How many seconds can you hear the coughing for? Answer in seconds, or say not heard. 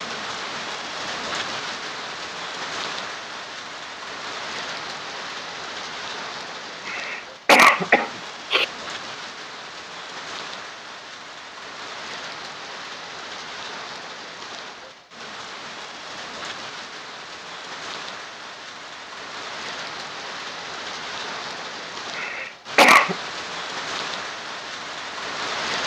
3 s.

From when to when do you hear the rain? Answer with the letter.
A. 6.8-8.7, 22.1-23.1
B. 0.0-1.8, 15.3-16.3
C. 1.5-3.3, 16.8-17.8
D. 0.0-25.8
D.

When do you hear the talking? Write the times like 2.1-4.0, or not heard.
not heard.